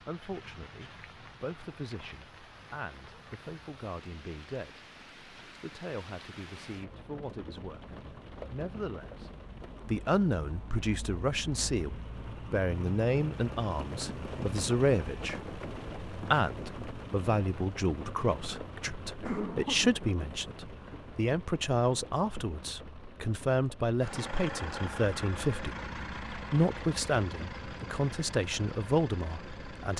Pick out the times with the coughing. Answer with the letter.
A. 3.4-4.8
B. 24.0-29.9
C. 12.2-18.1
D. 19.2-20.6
D.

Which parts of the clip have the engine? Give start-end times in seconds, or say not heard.
24.0-29.9.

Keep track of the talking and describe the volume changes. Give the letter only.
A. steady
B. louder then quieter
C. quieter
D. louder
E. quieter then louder
D.